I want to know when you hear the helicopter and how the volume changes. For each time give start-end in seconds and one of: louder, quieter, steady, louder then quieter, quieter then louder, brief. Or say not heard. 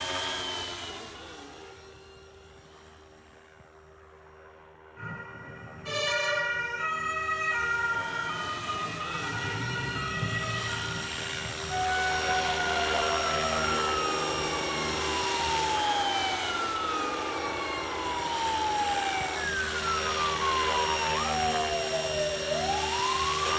0.0-23.5 louder.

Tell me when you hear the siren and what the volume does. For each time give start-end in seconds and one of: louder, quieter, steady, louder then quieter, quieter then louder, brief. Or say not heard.
5.0-23.5 steady.